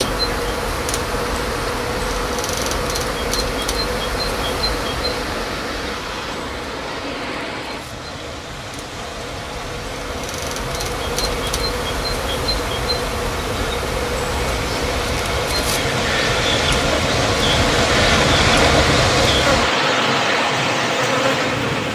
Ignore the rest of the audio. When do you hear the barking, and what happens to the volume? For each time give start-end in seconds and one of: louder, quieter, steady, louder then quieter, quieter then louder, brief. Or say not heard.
not heard.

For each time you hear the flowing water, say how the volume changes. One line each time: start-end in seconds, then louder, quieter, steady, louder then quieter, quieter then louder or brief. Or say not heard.
0.0-21.9 louder.